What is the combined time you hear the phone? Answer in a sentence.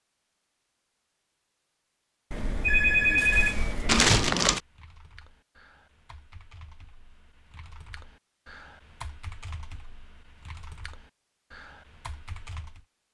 You can hear the phone for 2 seconds altogether.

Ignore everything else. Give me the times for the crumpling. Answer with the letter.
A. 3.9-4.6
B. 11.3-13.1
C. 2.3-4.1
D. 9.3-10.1
A.